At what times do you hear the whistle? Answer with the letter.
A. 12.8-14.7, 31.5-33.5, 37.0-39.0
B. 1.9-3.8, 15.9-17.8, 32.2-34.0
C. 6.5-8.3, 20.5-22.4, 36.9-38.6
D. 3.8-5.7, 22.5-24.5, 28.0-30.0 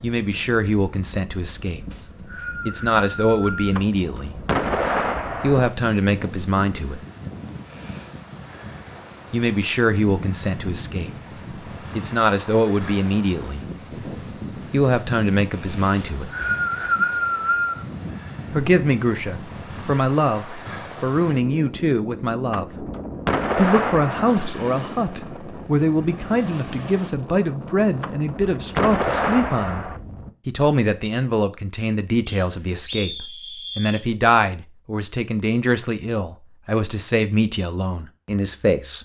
B.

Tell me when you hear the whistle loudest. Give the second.
17 s.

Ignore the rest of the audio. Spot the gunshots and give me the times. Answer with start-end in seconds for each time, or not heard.
3.8-5.7, 22.5-24.5, 28.0-30.0.